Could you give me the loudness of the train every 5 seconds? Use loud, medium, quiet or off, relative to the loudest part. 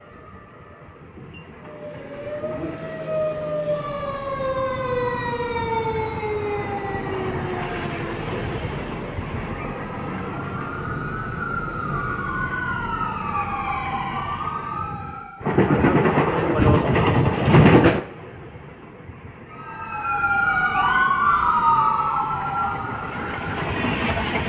quiet, quiet, quiet, loud, medium.